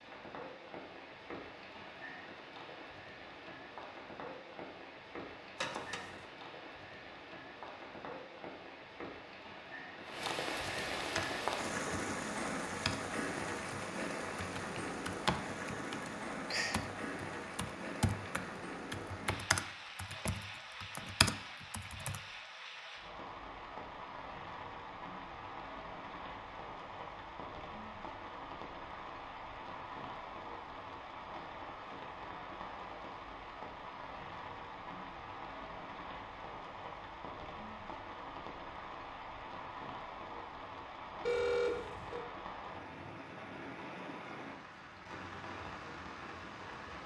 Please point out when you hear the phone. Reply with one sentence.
The phone can be heard from 5.5 to 6.1 s and from 41.2 to 42.2 s.